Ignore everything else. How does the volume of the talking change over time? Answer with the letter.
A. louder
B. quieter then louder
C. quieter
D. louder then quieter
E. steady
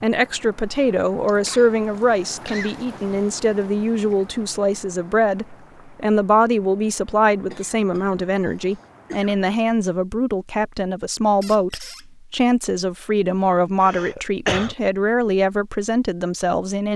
E.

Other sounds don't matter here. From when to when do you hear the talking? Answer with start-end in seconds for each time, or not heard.
0.0-16.9.